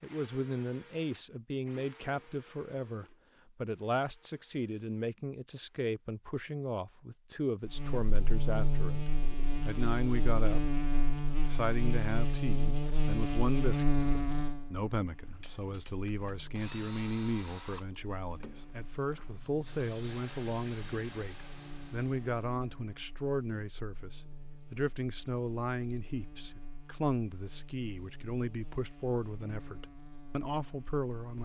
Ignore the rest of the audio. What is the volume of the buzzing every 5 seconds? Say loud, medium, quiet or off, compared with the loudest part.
off, loud, loud, quiet, quiet, quiet, quiet.